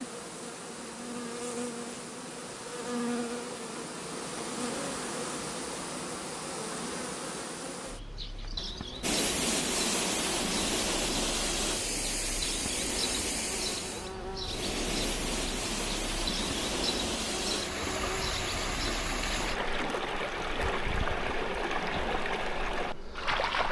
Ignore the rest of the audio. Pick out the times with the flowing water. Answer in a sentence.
The flowing water can be heard from 9.0 to 23.6 s.